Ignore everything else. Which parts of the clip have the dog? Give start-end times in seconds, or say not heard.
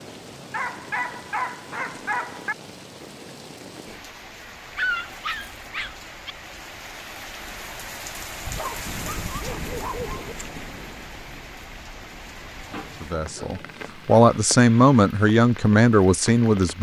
0.5-2.5, 4.4-6.3, 8.6-10.3, 12.7-14.2.